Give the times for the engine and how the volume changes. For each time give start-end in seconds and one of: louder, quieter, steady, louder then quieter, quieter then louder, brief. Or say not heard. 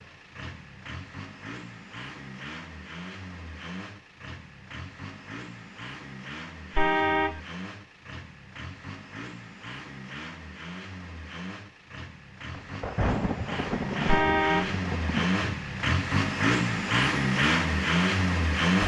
0.0-18.8 louder.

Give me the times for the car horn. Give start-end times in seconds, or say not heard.
6.8-7.4, 14.1-14.8.